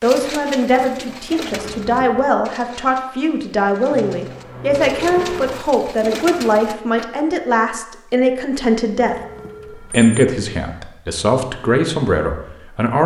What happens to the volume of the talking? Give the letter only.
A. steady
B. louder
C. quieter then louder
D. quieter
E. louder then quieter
A.